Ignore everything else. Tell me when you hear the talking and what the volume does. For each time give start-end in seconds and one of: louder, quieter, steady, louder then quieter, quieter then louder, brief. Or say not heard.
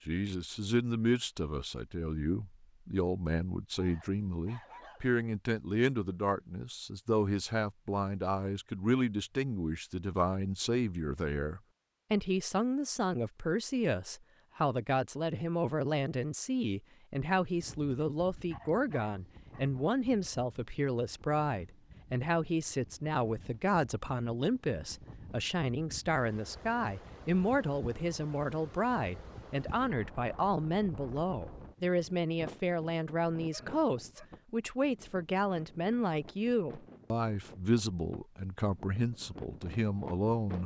0.1-40.6 steady.